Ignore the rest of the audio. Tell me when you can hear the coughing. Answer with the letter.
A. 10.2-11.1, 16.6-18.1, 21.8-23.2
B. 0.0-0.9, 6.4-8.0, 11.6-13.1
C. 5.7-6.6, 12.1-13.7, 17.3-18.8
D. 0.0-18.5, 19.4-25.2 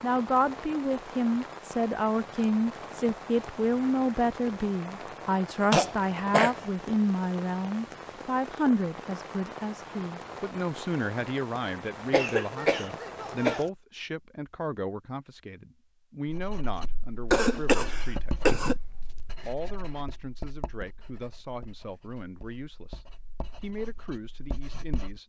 C.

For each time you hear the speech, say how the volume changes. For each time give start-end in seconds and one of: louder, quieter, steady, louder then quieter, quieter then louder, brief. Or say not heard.
0.0-18.5 quieter
19.4-25.2 steady.